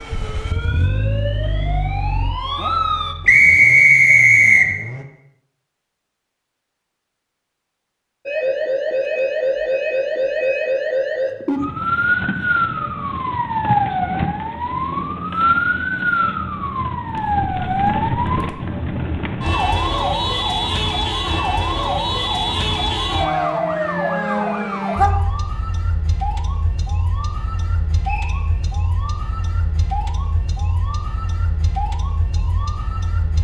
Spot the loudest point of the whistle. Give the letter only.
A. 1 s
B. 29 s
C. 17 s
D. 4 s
D.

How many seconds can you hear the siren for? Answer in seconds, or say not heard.
28 s.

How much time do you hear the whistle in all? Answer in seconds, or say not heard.
2 s.